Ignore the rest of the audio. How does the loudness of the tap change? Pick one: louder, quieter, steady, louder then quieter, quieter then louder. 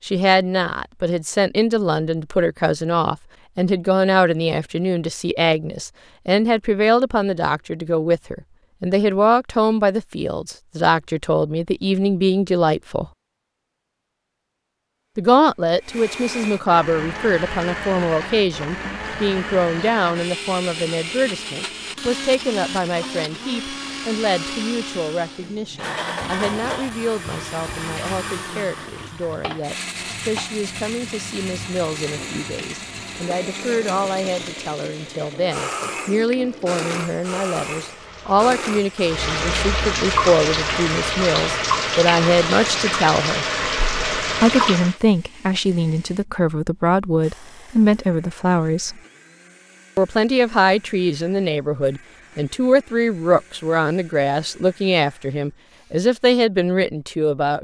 louder.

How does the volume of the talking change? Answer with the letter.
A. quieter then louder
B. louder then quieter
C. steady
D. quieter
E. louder
A.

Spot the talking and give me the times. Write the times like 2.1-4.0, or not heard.
0.0-13.1, 15.2-43.5, 44.4-49.0, 50.0-57.5.